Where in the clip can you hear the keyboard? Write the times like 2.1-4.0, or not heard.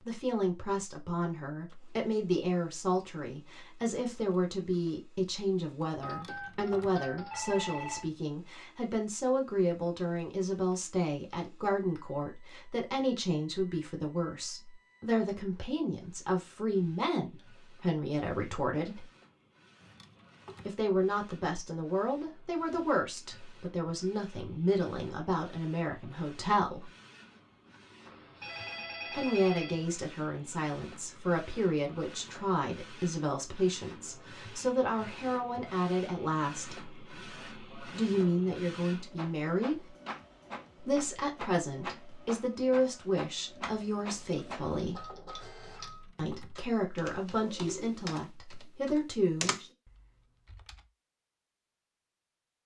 43.6-50.9.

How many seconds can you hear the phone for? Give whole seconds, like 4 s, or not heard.
4 s.